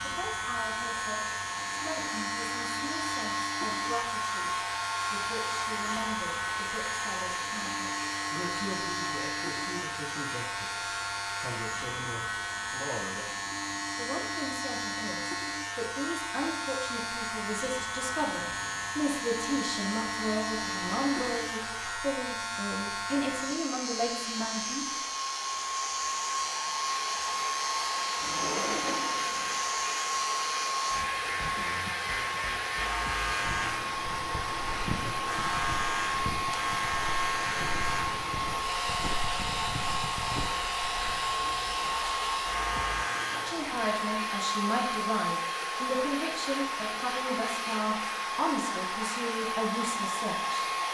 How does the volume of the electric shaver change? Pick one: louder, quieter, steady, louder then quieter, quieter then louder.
steady.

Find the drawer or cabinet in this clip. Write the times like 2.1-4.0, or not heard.
18.2-19.1, 28.2-29.6.